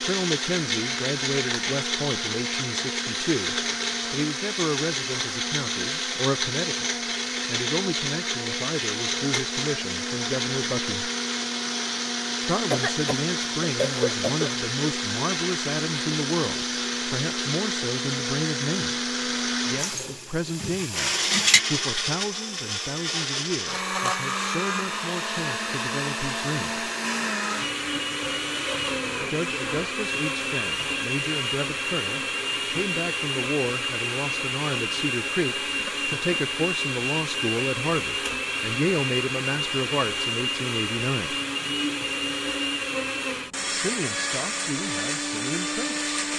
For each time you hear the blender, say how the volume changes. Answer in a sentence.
The blender can be heard from 0.0 to 46.3 s, at a steady volume.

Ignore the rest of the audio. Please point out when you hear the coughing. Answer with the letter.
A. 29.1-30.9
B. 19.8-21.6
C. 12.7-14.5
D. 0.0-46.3
C.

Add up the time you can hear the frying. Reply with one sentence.
You can hear the frying for 2 seconds altogether.